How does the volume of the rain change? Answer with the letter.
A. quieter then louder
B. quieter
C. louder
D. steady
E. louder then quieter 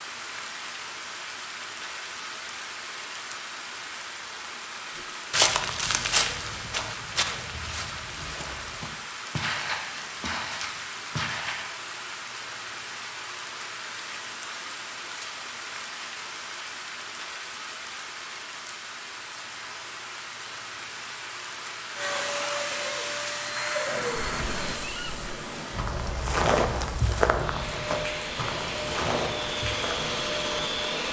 D.